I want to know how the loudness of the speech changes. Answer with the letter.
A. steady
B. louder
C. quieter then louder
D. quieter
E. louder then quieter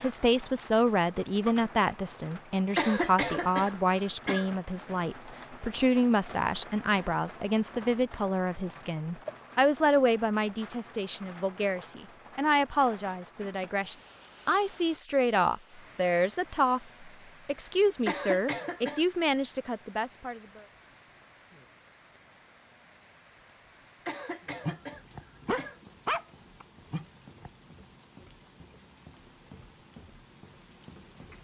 A.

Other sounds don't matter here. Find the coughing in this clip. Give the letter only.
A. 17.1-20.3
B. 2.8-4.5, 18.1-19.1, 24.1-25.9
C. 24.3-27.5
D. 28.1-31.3
B.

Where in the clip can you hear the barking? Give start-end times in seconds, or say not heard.
24.3-27.5.